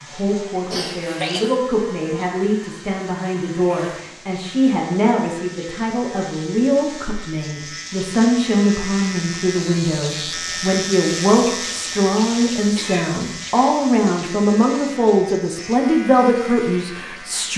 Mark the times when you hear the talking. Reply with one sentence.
The talking can be heard from 0.0 to 17.5 s.